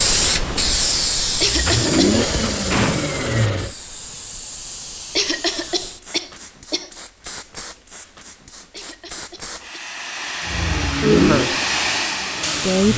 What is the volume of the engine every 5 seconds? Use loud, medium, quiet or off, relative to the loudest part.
loud, off, loud.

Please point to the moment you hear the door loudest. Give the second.
3 s.